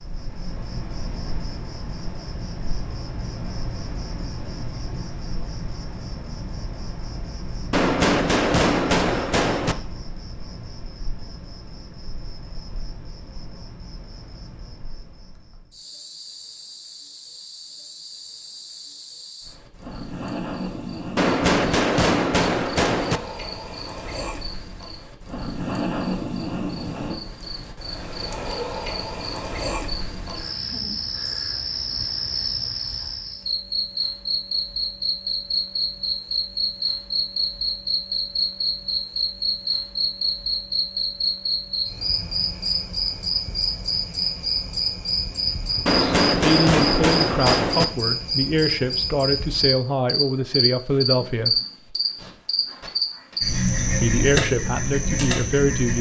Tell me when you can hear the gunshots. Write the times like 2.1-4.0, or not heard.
7.7-9.8, 21.1-23.2, 45.9-47.9.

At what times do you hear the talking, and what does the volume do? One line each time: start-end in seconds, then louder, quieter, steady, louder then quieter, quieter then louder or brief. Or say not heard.
46.0-51.6 steady
54.0-55.9 brief.